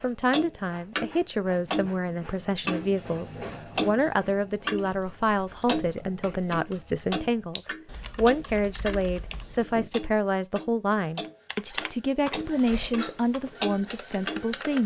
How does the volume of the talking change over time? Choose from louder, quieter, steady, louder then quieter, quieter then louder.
steady.